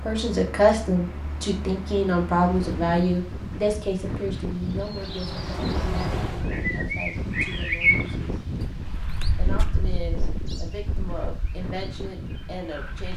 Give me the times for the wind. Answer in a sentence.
You can hear the wind from 2.5 to 13.1 s.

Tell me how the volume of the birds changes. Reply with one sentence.
The loudness of the birds goes up, then down.